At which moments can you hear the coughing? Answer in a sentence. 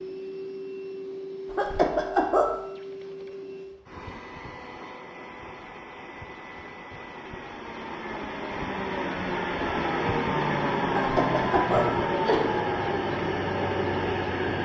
You can hear the coughing from 1.5 to 2.5 s and from 10.8 to 12.5 s.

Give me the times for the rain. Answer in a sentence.
The rain can't be heard in this clip.